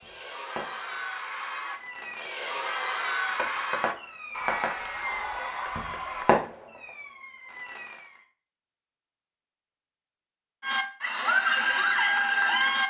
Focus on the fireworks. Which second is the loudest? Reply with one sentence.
The volume of the fireworks peaks at 6 seconds.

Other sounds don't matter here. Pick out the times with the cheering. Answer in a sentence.
The cheering can be heard from 0.0 to 6.3 s and from 10.6 to 12.8 s.